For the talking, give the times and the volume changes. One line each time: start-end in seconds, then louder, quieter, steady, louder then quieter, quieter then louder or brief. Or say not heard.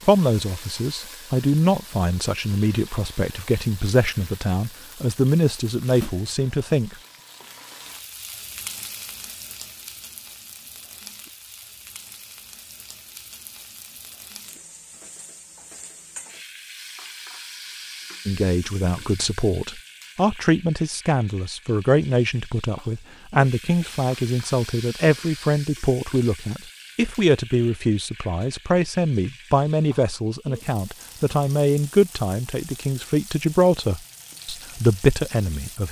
0.1-7.0 steady
18.2-35.8 steady.